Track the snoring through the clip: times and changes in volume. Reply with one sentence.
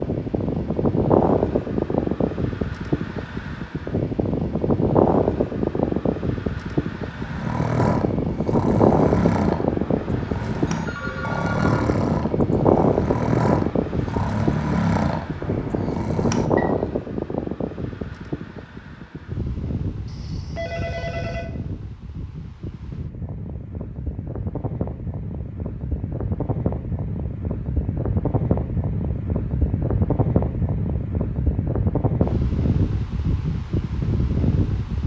The snoring can be heard from 7.0 to 16.8 s, at a steady volume.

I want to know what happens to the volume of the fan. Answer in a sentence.
The loudness of the fan goes down, then up.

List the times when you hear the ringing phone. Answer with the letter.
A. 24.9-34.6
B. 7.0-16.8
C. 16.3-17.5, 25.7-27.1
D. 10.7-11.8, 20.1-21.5
D.